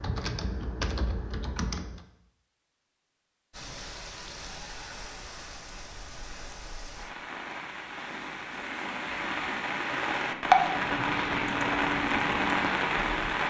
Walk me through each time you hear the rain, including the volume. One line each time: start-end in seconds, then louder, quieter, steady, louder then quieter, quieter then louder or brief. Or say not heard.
3.5-13.4 louder.